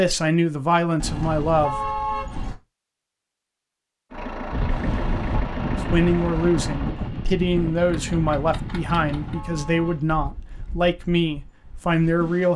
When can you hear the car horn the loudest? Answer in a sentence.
The volume of the car horn peaks at 2 seconds.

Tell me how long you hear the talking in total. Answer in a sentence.
The talking can be heard for 9 seconds in total.